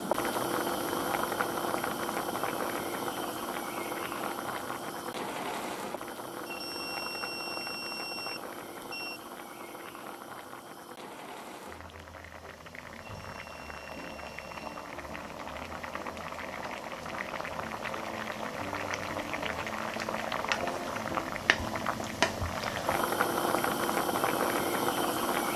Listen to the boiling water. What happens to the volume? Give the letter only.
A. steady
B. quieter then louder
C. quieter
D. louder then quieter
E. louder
B.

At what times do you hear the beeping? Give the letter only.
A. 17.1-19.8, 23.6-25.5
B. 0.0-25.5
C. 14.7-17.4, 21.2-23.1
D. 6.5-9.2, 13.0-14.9
D.